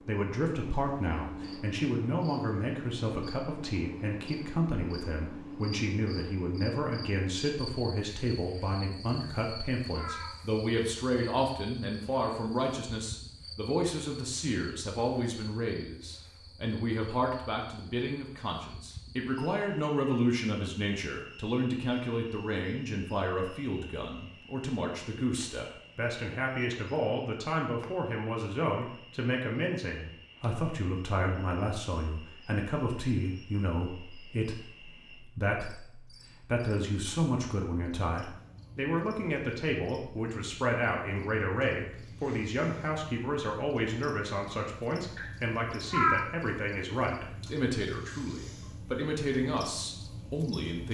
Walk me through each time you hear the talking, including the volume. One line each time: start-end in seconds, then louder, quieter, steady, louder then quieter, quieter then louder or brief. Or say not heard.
0.1-50.8 steady.